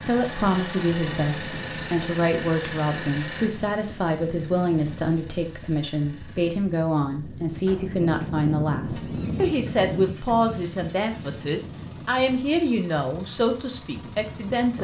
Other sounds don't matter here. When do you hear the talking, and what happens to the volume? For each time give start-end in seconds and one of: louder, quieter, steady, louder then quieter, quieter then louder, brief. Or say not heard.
0.1-14.7 steady.